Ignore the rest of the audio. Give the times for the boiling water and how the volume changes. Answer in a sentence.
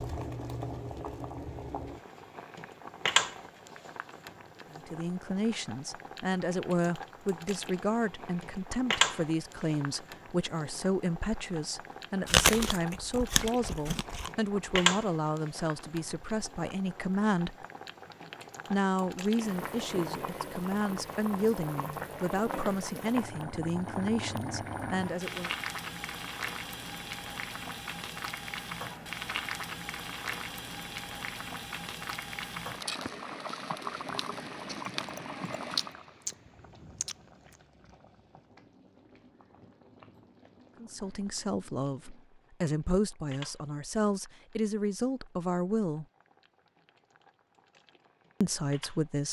The boiling water can be heard from 0.0 to 49.2 s, getting quieter.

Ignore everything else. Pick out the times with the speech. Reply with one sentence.
You can hear the speech from 4.7 to 17.6 s, from 18.7 to 25.5 s, from 40.8 to 46.0 s and from 48.4 to 49.2 s.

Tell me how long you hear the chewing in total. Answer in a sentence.
The chewing can be heard for 4 seconds in total.